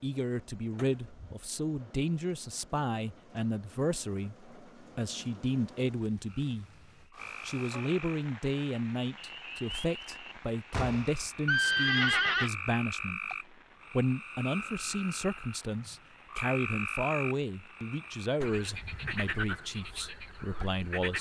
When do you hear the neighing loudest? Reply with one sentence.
The loudest moment of the neighing is at 12 seconds.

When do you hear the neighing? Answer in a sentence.
You can hear the neighing from 0.8 to 1.4 s, from 10.7 to 12.5 s and from 18.4 to 19.2 s.